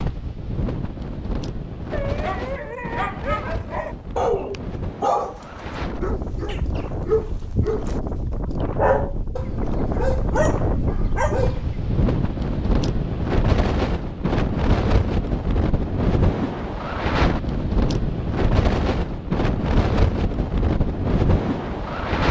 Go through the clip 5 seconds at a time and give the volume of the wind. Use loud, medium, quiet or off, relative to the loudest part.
medium, medium, loud, loud, loud.